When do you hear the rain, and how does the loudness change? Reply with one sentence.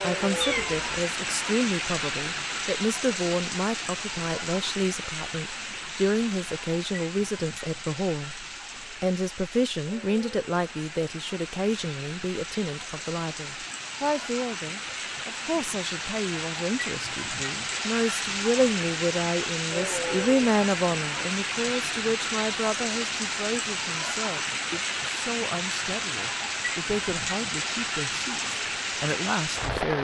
The rain can be heard from 0.0 to 29.9 s, getting quieter then louder.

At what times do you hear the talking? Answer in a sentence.
The talking can be heard from 0.0 to 29.9 s.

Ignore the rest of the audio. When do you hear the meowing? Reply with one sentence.
You can hear the meowing from 0.4 to 1.1 s.